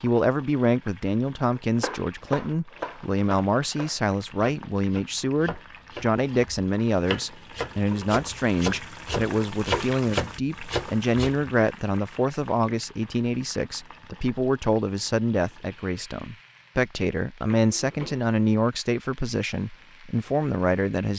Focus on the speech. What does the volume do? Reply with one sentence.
The volume of the speech stays about the same.